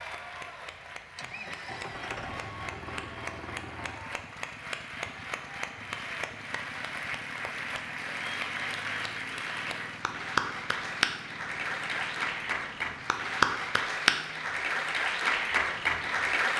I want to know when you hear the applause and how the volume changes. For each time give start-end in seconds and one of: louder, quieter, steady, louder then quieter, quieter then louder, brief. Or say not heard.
0.0-16.5 louder.